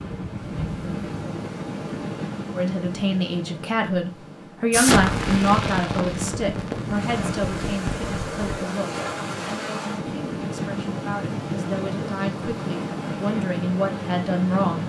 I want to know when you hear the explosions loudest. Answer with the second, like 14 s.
5 s.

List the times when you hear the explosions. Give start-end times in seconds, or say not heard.
4.7-8.7.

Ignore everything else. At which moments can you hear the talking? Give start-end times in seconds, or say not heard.
2.5-14.8.